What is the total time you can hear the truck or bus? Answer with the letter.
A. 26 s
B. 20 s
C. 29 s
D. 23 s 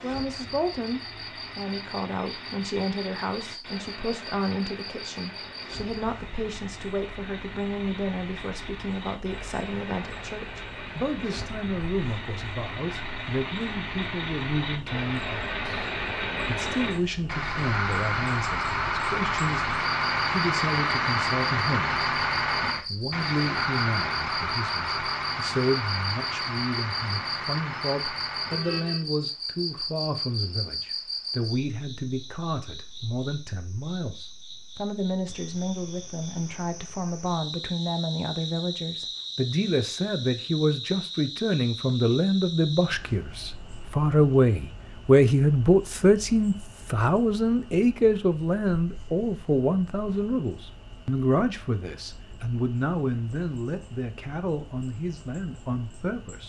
C.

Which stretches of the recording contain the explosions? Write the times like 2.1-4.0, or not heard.
not heard.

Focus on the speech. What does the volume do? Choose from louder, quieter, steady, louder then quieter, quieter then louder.
louder.